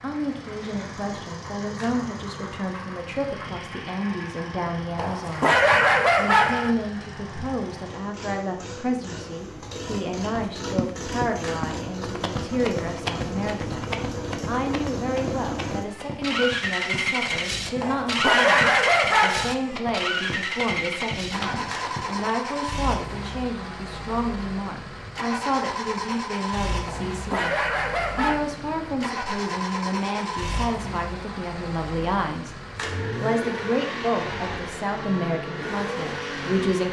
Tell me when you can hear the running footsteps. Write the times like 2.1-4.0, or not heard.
10.5-22.4.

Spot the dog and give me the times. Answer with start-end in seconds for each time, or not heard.
5.0-6.8, 17.8-19.6, 26.9-28.4.